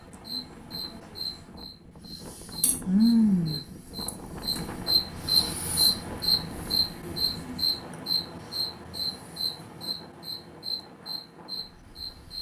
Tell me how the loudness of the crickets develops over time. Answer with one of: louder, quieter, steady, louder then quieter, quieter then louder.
louder then quieter.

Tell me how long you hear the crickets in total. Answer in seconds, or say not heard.
12 s.